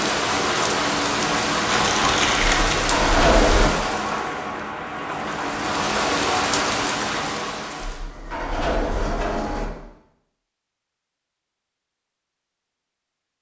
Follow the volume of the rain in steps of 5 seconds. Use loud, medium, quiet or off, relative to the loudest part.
loud, loud, off.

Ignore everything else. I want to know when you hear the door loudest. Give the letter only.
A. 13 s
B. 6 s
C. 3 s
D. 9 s
C.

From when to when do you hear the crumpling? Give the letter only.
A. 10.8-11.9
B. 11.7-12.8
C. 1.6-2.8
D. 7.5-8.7
C.